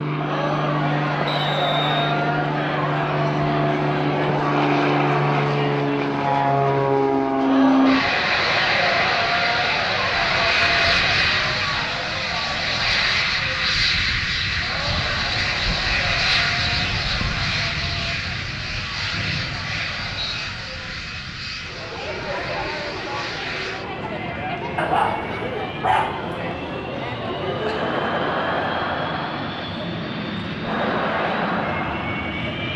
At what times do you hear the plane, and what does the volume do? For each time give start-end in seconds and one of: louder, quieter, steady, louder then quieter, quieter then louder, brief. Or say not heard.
0.0-32.7 quieter.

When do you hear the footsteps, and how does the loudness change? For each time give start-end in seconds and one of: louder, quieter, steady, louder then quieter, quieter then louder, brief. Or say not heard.
not heard.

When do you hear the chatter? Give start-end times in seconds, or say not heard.
0.0-32.7.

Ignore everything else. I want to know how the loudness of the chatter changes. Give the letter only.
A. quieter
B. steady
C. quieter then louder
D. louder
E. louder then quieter
C.